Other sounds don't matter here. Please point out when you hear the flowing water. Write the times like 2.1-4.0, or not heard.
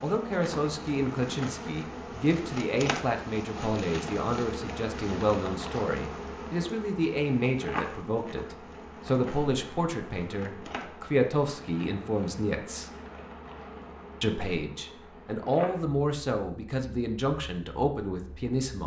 not heard.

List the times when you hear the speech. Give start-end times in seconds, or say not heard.
0.0-12.9, 14.2-18.8.